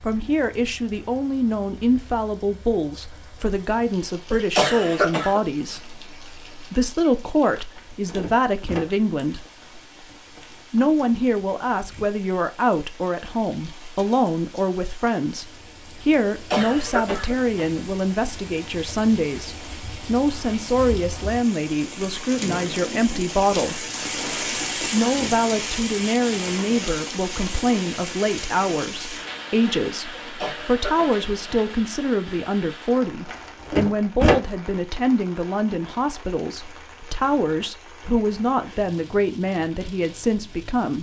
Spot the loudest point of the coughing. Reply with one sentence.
The loudest moment of the coughing is at 5 seconds.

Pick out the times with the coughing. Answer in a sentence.
The coughing can be heard from 4.3 to 5.4 s, from 16.3 to 17.9 s and from 30.1 to 31.7 s.